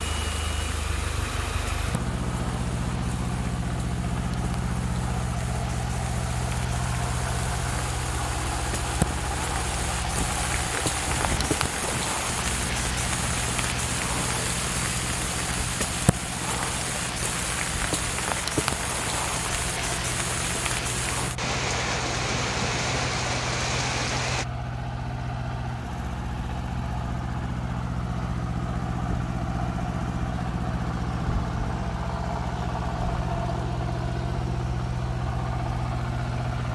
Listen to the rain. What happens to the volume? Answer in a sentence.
The volume of the rain goes up.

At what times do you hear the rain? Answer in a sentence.
The rain can be heard from 0.0 to 24.4 s.